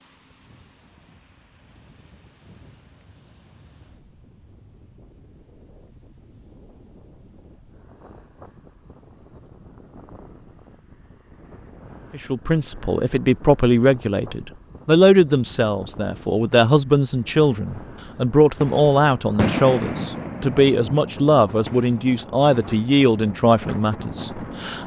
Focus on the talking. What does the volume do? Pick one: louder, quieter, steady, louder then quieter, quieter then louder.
steady.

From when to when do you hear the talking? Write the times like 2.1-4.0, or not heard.
12.1-24.8.